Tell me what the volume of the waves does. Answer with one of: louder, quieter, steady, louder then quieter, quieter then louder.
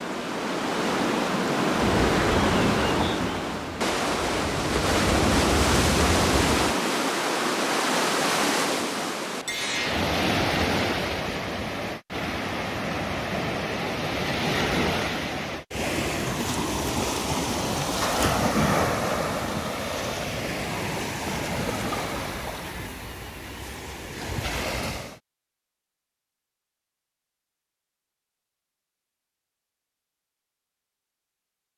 quieter.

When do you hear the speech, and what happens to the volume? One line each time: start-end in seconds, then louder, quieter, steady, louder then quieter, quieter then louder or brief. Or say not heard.
not heard.